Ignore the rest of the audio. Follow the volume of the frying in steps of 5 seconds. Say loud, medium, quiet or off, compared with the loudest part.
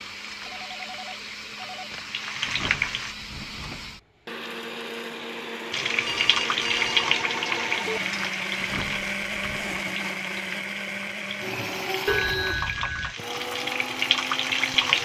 medium, loud, loud.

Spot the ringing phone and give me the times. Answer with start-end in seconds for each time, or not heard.
0.5-2.0, 6.0-8.0, 12.1-13.2.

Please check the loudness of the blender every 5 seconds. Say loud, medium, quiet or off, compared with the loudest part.
medium, loud, loud.